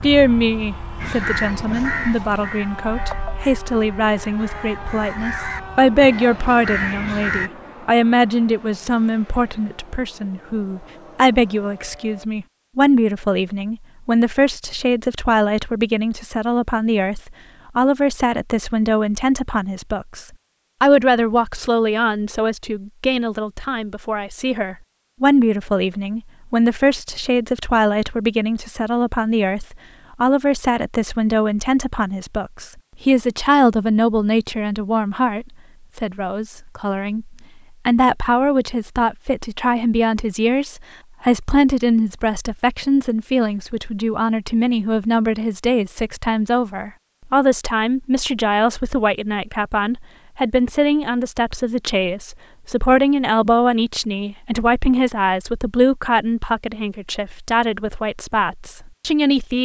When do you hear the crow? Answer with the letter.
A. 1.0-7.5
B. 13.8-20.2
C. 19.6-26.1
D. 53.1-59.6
A.